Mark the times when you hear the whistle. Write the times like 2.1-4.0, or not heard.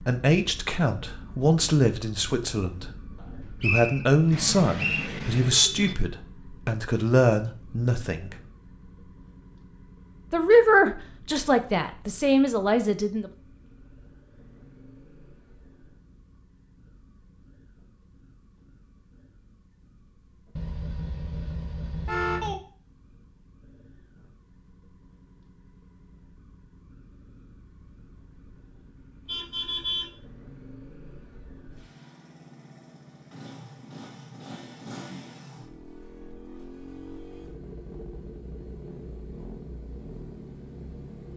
3.2-5.1.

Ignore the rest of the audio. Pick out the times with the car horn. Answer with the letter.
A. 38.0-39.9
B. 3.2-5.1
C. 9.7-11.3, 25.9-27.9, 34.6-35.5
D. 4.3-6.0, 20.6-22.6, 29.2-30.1
D.